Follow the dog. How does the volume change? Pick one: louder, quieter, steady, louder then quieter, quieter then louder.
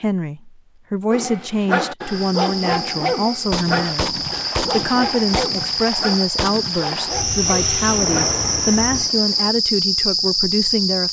quieter.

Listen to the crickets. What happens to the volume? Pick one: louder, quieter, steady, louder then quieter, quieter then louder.
louder.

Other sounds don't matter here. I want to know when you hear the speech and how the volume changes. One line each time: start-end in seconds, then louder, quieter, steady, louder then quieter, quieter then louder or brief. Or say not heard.
0.0-11.0 steady.